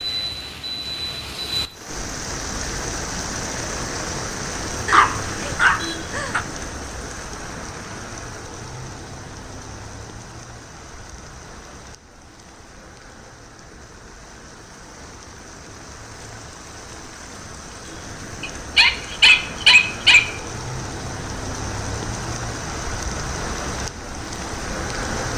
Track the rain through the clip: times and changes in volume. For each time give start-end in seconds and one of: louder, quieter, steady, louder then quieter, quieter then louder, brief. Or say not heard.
0.0-25.3 quieter then louder.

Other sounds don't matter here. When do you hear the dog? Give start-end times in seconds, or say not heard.
4.8-6.4, 18.4-20.3.